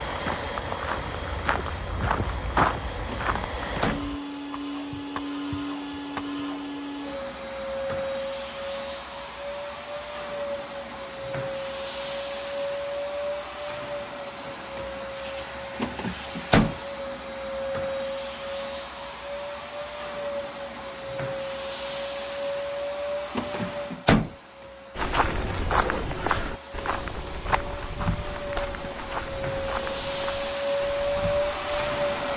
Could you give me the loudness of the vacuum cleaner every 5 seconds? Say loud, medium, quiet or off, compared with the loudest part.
medium, medium, medium, medium, medium, medium, loud.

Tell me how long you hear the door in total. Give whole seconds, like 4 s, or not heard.
3 s.